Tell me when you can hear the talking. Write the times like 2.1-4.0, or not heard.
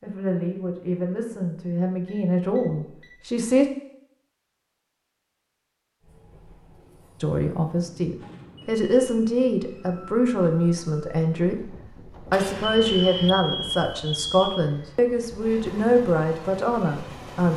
0.0-3.6, 7.2-17.5.